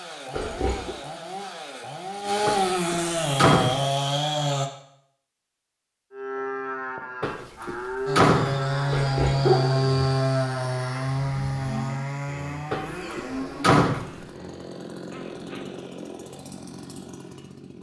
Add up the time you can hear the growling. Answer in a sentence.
The growling can be heard for 2 seconds in total.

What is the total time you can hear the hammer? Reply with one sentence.
You can't hear the hammer here.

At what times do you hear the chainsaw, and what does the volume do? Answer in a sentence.
The chainsaw can be heard from 0.0 to 4.7 s, getting louder; and from 8.1 to 17.7 s, getting quieter.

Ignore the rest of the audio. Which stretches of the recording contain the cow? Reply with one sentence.
The cow can be heard from 6.1 to 14.7 s.